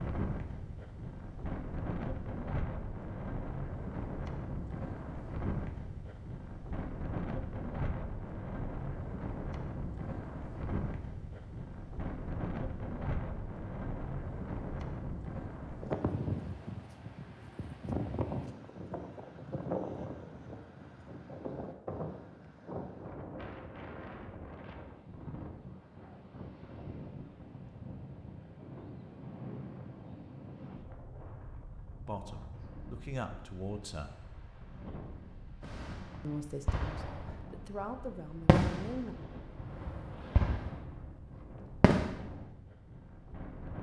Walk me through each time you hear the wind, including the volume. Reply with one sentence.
The wind can be heard from 0.0 to 43.7 s, getting quieter.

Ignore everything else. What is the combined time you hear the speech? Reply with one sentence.
You can hear the speech for 5 seconds altogether.